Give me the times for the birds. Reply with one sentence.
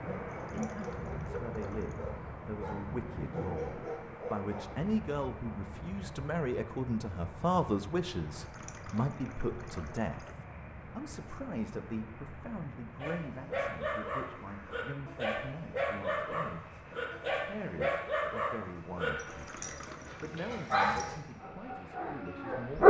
The birds can't be heard in this clip.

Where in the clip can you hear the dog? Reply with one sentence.
You can hear the dog from 0.0 to 4.7 s and from 13.0 to 22.8 s.